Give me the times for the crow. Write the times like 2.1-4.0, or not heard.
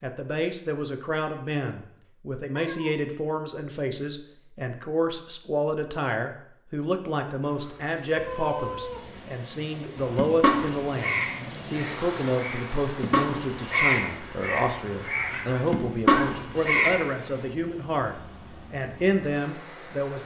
10.0-17.0.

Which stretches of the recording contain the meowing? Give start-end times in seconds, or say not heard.
2.5-3.0, 8.2-9.2, 15.2-16.1.